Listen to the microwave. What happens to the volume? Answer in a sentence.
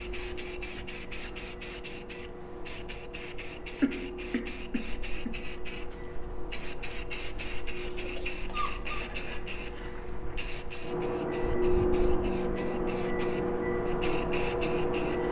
The loudness of the microwave goes up.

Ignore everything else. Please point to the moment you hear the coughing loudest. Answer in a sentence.
The volume of the coughing peaks at 4 seconds.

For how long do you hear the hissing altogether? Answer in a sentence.
You can hear the hissing for 15 seconds altogether.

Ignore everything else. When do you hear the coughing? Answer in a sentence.
The coughing can be heard from 3.8 to 5.3 s and from 7.8 to 9.4 s.